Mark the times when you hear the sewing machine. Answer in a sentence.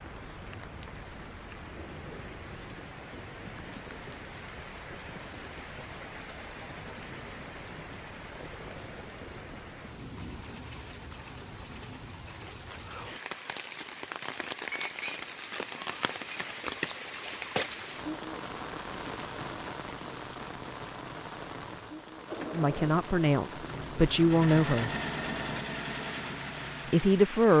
You can hear the sewing machine from 22.2 to 27.4 s.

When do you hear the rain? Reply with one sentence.
The rain can be heard from 0.0 to 27.5 s.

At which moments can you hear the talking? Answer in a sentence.
You can hear the talking from 22.5 to 24.9 s and from 26.9 to 27.5 s.